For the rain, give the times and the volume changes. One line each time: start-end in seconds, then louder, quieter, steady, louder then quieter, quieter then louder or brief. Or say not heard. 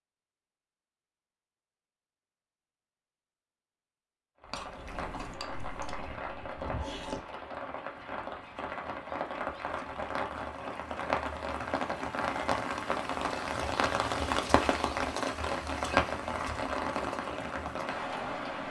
4.4-18.6 louder.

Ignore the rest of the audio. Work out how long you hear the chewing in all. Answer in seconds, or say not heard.
3 s.